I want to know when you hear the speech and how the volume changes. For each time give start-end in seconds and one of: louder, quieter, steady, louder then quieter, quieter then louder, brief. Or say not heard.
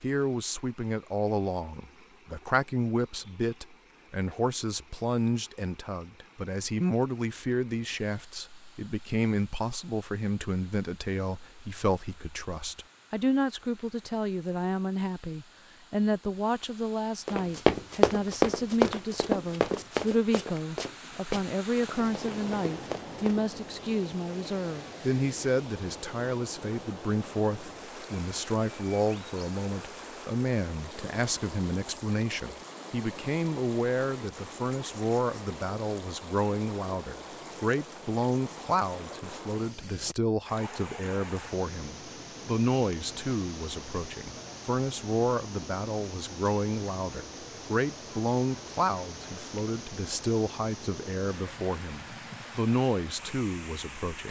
0.0-54.2 steady.